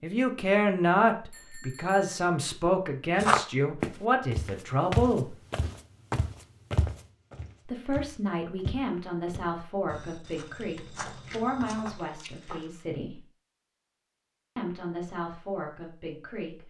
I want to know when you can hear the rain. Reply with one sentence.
The rain can't be heard in this clip.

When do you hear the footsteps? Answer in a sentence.
You can hear the footsteps from 3.1 to 12.7 s.